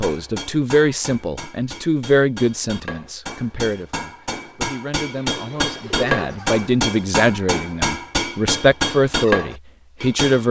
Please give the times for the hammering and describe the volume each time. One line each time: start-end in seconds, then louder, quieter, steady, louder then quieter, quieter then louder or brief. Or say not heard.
0.0-10.4 louder.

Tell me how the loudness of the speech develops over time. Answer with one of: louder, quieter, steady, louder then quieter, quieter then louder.
quieter then louder.